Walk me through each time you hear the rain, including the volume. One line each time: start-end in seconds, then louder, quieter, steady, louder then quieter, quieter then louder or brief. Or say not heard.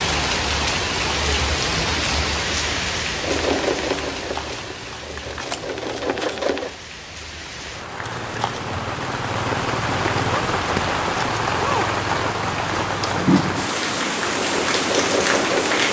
0.0-15.8 quieter then louder.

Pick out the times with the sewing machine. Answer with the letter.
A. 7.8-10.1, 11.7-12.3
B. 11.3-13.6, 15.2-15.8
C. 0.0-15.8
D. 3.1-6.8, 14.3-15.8
D.